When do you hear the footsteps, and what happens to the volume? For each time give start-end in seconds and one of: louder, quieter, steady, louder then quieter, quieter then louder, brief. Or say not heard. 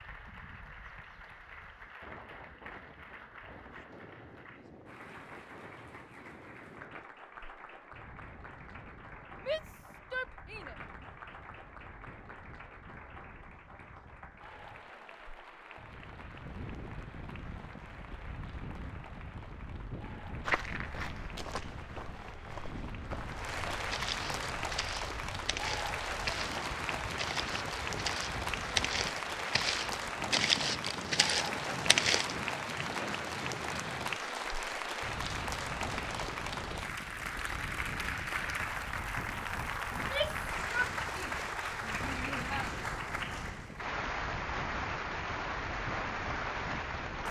20.4-32.4 louder.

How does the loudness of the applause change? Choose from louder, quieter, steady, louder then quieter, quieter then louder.
louder.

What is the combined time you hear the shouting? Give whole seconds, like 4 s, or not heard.
4 s.